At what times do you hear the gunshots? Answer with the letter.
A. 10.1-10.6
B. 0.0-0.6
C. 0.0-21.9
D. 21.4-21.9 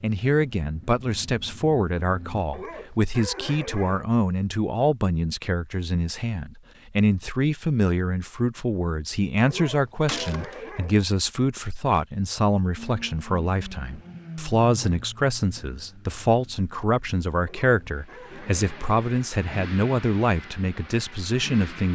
A.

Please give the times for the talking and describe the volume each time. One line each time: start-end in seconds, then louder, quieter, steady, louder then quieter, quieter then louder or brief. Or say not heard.
0.0-21.9 steady.